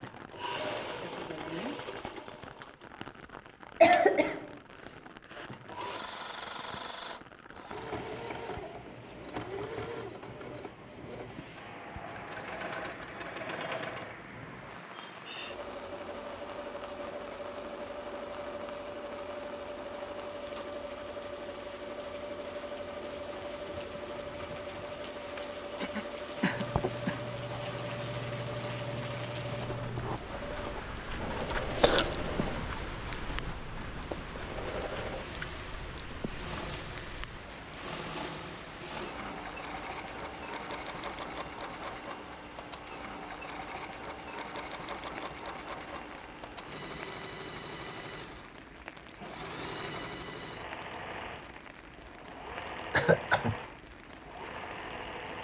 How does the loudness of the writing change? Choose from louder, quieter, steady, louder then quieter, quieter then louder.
louder then quieter.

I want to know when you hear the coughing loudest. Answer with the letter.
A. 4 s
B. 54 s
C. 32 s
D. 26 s
A.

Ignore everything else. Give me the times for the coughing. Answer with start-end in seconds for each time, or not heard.
3.8-5.5, 25.4-27.2, 52.9-53.5.